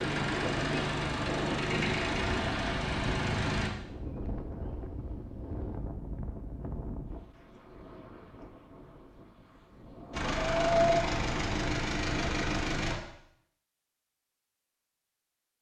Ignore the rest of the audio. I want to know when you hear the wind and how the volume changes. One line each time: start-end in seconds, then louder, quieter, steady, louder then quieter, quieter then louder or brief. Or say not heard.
0.0-12.8 quieter then louder.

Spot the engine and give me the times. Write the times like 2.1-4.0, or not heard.
0.0-3.7, 10.1-13.0.